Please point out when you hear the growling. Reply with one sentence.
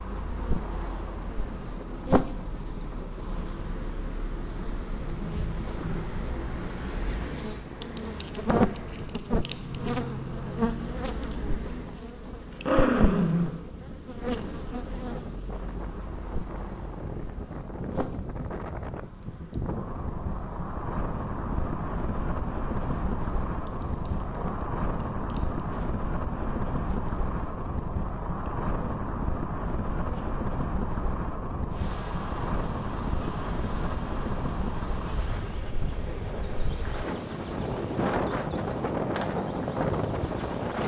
The growling can be heard from 12.5 to 13.6 s.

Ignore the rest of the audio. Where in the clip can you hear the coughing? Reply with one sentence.
The coughing can't be heard in this clip.